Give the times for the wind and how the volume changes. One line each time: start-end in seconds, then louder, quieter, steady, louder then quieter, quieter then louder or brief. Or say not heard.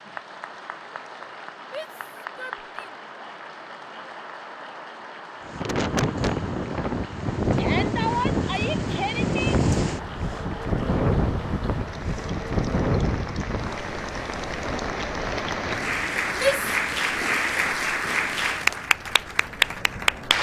5.5-20.3 quieter.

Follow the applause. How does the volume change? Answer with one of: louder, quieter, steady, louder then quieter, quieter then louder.
louder.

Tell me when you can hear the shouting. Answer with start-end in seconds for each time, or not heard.
1.7-3.0, 7.5-9.6, 16.4-16.9.